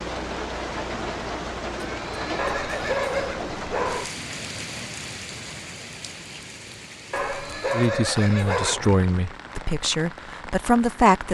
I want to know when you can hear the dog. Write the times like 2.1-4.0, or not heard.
2.4-4.1, 7.1-8.9.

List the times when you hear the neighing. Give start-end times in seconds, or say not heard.
1.9-3.4, 7.2-9.1.